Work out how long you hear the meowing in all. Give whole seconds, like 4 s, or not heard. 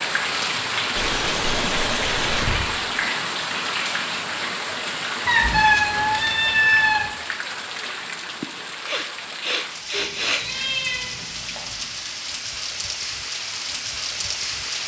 6 s.